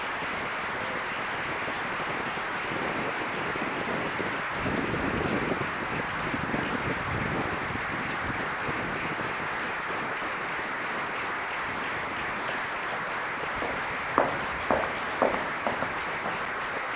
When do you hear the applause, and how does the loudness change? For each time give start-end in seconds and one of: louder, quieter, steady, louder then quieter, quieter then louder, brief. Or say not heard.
0.0-16.9 steady.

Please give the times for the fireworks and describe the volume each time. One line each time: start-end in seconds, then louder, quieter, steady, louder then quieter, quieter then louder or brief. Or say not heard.
not heard.